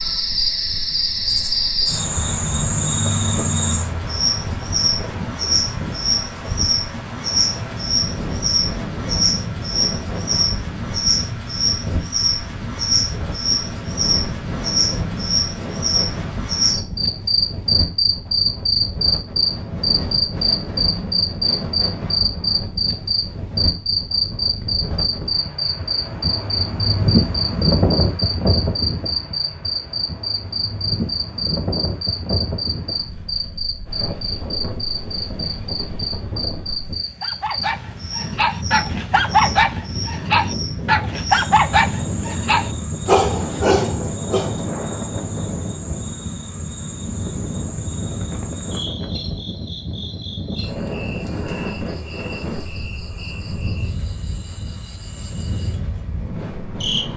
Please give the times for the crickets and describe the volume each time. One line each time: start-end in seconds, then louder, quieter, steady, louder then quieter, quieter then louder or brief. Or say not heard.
0.0-57.1 quieter.